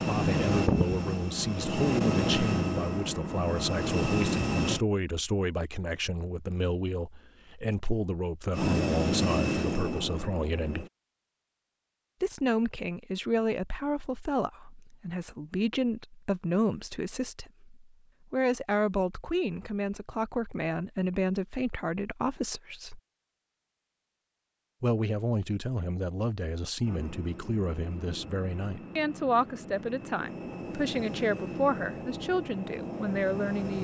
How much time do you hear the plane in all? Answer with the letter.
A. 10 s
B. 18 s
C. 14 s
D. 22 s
C.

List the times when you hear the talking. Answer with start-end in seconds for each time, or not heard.
0.0-10.8, 12.2-23.0, 24.8-33.7.